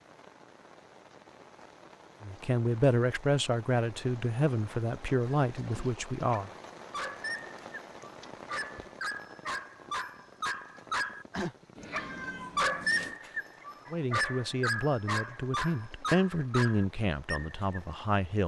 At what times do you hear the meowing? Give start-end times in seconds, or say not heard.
11.8-13.2.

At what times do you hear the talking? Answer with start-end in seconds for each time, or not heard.
2.2-6.5, 13.9-18.4.